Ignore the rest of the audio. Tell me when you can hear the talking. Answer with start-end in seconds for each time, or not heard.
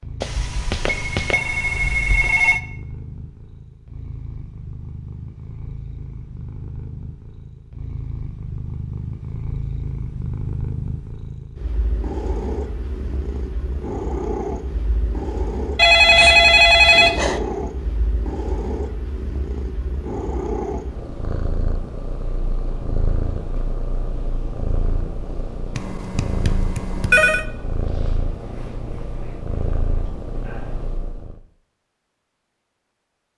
not heard.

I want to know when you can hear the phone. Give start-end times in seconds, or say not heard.
0.2-2.6, 15.8-17.4, 25.8-27.4.